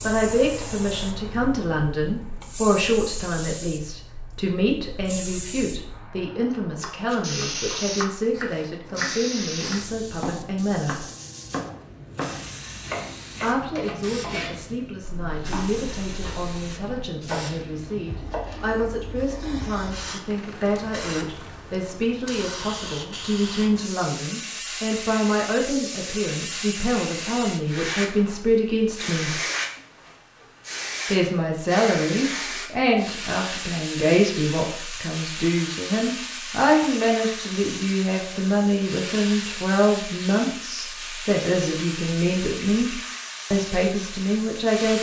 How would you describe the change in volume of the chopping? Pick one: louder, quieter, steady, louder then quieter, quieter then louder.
steady.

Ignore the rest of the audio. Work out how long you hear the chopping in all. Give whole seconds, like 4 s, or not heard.
12 s.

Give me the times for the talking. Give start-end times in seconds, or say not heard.
0.0-11.0, 13.4-29.4, 31.1-44.9.